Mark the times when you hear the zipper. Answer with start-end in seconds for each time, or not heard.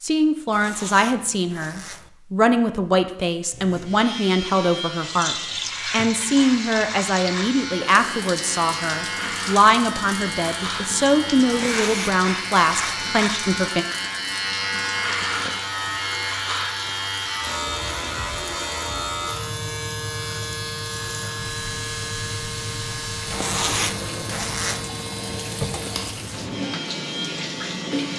0.5-2.1, 11.5-13.1, 23.3-24.9.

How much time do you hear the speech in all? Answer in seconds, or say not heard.
14 s.